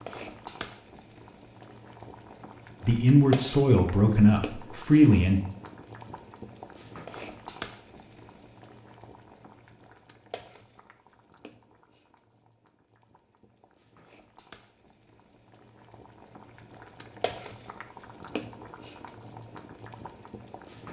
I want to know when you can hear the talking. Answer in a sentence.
You can hear the talking from 2.8 to 5.4 s.